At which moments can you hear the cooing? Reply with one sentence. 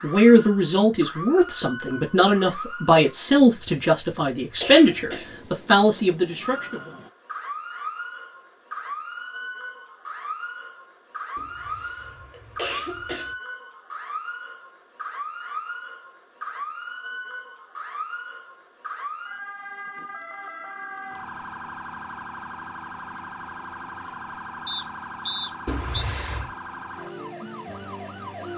The cooing can't be heard in this clip.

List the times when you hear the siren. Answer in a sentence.
The siren can be heard from 0.0 to 3.0 s and from 6.4 to 28.5 s.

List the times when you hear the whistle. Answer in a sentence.
The whistle can be heard from 24.6 to 26.1 s.